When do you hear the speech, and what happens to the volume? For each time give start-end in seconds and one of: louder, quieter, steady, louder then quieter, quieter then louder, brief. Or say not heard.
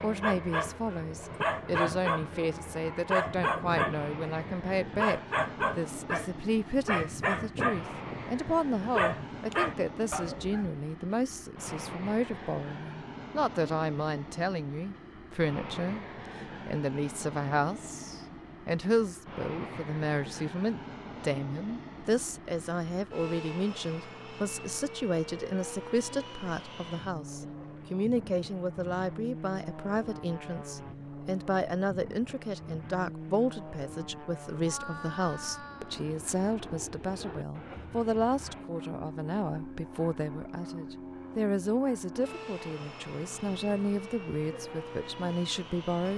0.0-46.1 steady.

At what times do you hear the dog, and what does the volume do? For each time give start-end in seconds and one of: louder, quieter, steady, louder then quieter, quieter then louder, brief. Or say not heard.
0.0-10.7 steady.